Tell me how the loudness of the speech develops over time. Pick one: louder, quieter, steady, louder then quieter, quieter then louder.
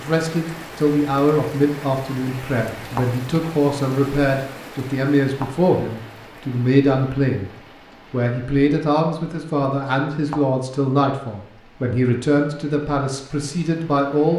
steady.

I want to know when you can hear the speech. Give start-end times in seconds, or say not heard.
0.0-7.5, 8.1-14.3.